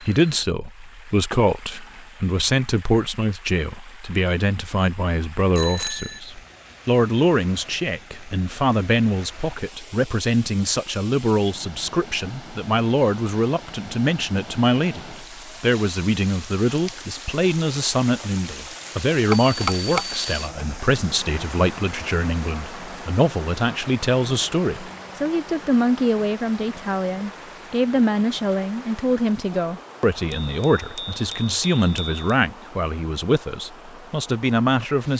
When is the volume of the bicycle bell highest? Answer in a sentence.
The loudest moment of the bicycle bell is at 20 seconds.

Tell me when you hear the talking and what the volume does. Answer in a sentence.
You can hear the talking from 0.0 to 35.1 s, at a steady volume.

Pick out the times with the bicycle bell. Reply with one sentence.
You can hear the bicycle bell from 5.5 to 6.2 s, from 19.3 to 20.4 s and from 30.3 to 32.2 s.